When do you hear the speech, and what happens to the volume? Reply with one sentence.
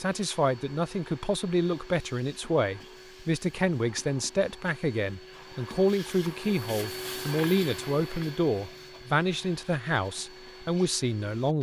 You can hear the speech from 0.0 to 11.5 s, at a steady volume.